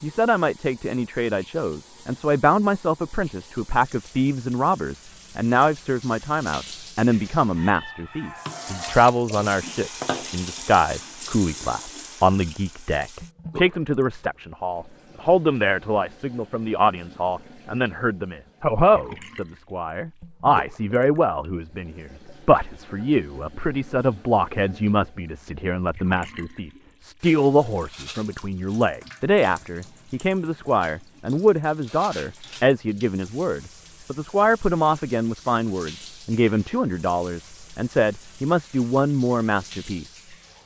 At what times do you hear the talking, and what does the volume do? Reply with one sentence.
The talking can be heard from 0.0 to 40.6 s, at a steady volume.